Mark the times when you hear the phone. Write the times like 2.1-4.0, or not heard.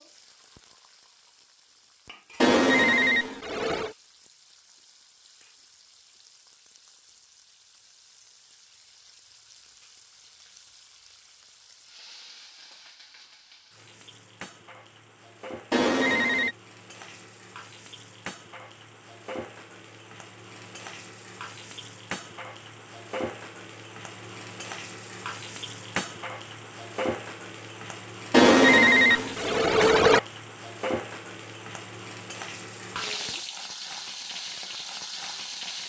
2.4-4.0, 15.7-16.6, 28.3-30.2.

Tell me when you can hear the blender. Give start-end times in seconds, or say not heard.
not heard.